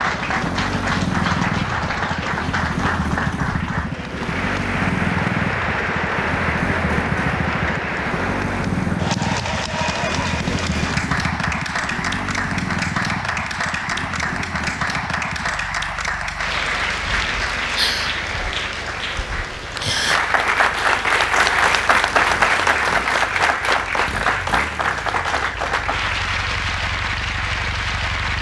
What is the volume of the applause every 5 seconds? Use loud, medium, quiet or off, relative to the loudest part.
medium, medium, medium, medium, loud, medium.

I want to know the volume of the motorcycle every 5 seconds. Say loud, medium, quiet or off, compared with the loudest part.
loud, loud, loud, quiet, quiet, quiet.